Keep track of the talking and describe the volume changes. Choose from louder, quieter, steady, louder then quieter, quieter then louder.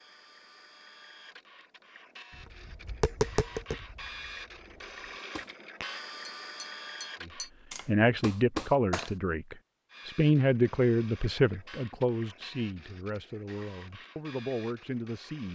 quieter.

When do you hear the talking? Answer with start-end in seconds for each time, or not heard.
7.2-15.5.